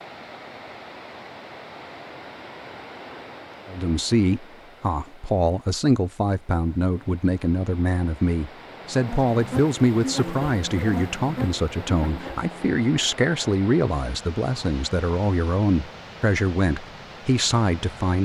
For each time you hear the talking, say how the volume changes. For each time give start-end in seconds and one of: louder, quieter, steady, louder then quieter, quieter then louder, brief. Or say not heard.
3.6-18.2 steady.